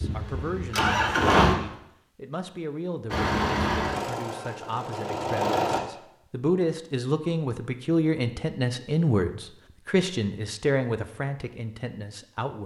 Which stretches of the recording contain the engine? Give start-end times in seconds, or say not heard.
0.0-1.6, 3.1-5.8.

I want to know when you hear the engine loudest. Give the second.
1 s.